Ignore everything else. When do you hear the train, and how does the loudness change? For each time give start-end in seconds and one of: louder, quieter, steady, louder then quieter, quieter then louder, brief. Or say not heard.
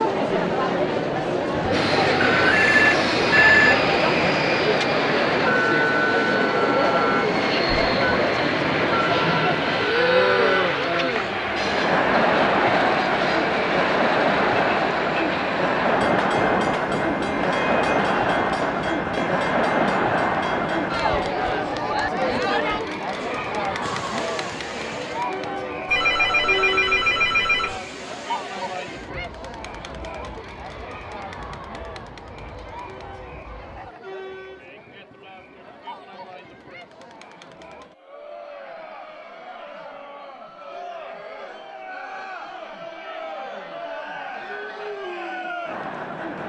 1.7-34.0 quieter.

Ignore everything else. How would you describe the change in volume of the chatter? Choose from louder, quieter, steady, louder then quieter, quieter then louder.
quieter.